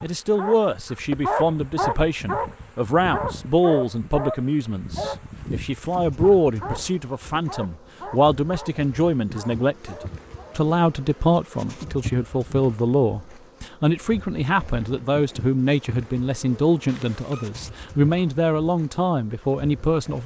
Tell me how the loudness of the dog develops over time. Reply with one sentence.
The loudness of the dog goes down.